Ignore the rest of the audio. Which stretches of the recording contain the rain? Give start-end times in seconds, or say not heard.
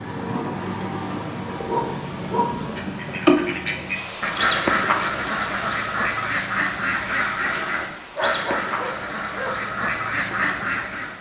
0.0-11.1.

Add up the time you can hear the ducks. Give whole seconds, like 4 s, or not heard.
8 s.